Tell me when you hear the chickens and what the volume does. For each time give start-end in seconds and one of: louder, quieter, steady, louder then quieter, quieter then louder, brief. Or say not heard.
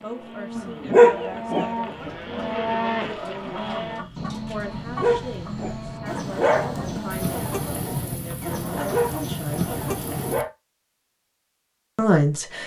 1.9-10.3 louder.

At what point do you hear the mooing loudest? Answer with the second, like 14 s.
3 s.